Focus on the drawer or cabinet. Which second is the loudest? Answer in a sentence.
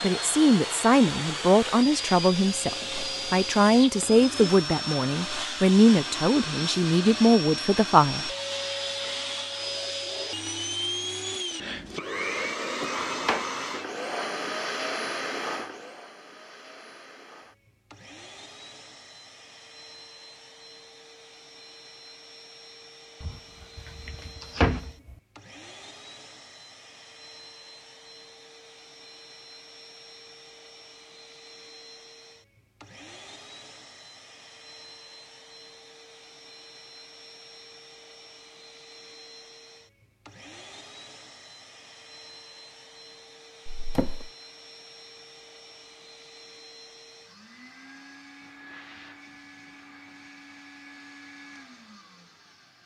The loudest moment of the drawer or cabinet is at 25 seconds.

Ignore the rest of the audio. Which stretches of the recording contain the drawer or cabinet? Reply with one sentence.
You can hear the drawer or cabinet from 12.8 to 13.4 s, from 23.2 to 25.1 s and from 43.6 to 44.3 s.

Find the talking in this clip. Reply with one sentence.
The talking can be heard from 0.0 to 8.3 s.